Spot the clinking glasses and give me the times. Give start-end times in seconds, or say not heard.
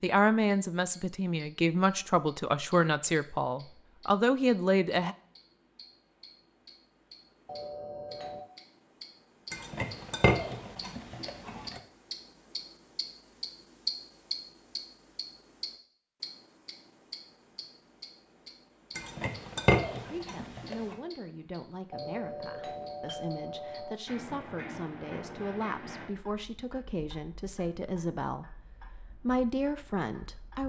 9.5-11.8, 18.9-20.9.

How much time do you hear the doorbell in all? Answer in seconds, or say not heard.
3 s.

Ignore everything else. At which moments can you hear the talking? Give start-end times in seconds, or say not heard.
0.0-5.2, 20.0-30.6.